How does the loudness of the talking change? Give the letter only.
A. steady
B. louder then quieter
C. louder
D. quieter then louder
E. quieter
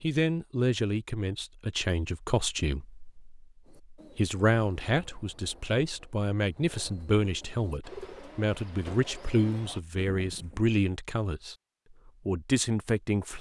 A.